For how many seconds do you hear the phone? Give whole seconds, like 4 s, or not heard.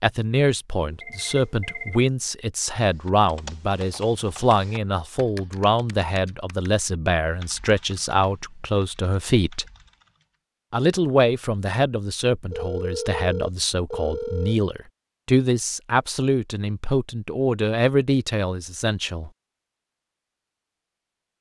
3 s.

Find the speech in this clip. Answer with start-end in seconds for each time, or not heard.
0.0-9.7, 10.7-19.3.